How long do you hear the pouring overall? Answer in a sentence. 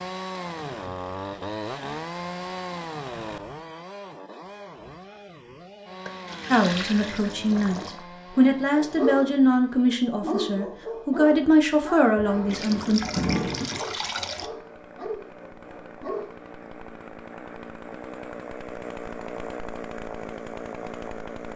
The pouring can be heard for 4 seconds in total.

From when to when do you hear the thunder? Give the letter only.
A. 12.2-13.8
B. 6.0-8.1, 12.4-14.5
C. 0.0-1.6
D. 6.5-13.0
A.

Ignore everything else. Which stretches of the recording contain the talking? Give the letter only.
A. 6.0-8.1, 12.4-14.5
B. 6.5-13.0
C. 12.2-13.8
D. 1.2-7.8
B.